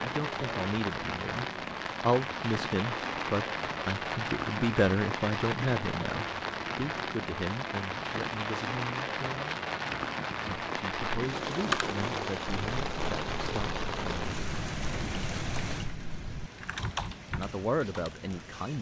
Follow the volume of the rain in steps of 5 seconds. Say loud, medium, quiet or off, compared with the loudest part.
loud, loud, loud, medium.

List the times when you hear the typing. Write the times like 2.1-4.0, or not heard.
11.5-18.1.